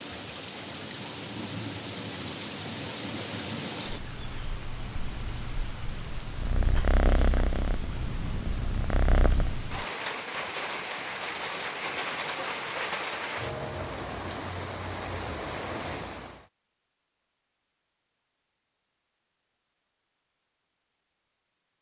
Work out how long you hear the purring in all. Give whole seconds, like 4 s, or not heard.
3 s.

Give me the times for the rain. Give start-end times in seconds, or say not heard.
0.0-16.4.